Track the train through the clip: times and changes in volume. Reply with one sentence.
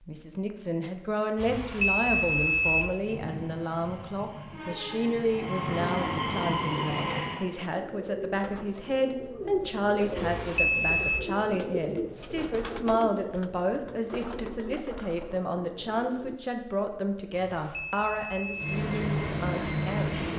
You can hear the train from 2.9 to 7.5 s, getting louder; and briefly from 18.6 to 20.3 s.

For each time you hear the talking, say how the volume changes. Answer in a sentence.
You can hear the talking from 0.1 to 20.2 s, at a steady volume.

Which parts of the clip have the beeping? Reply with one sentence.
You can hear the beeping from 1.4 to 2.9 s, from 10.2 to 11.2 s and from 17.3 to 18.8 s.